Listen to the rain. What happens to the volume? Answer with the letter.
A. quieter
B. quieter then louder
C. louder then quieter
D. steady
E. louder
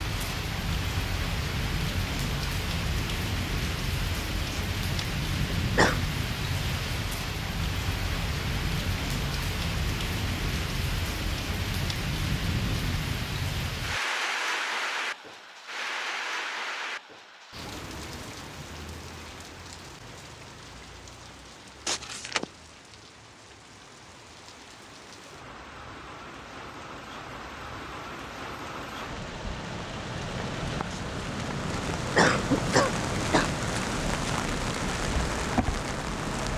B.